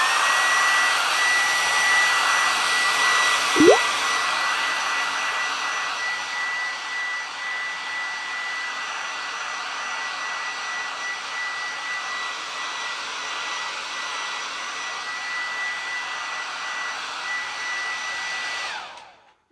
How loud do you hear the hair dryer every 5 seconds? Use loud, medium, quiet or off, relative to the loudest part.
loud, medium, medium, medium.